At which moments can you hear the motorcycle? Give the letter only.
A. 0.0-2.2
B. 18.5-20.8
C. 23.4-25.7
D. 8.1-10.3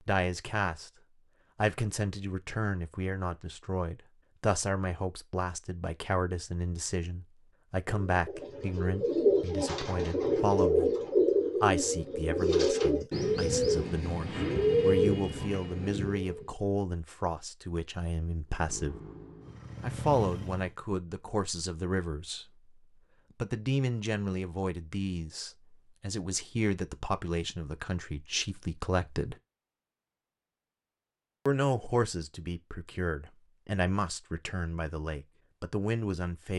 B.